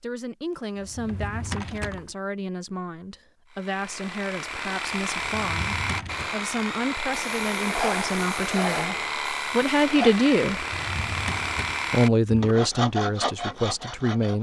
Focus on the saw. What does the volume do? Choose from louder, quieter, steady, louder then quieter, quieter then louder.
steady.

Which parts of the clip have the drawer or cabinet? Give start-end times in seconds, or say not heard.
0.8-2.1, 5.3-6.3, 10.6-12.6.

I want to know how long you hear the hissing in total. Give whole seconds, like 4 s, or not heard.
3 s.